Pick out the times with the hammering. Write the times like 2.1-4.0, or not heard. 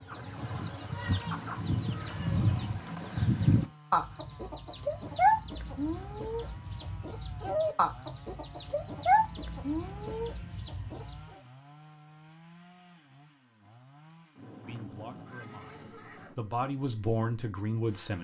not heard.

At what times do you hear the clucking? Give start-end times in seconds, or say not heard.
0.0-11.2.